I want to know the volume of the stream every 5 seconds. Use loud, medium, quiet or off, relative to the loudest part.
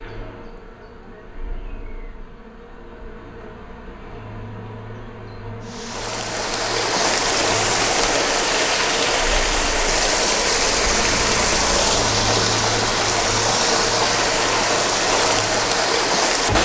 off, loud, loud, loud.